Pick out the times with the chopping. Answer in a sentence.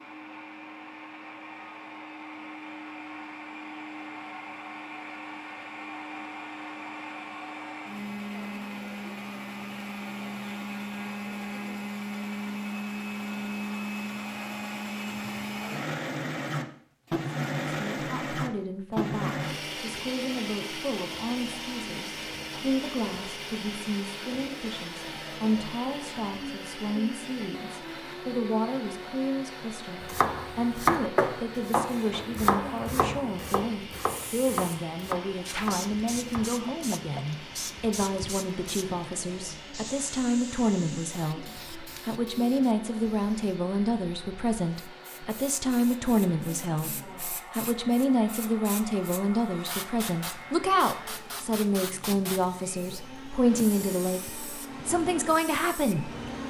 The chopping can be heard from 30.0 to 37.3 s.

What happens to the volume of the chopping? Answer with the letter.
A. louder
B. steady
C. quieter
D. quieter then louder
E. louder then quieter
C.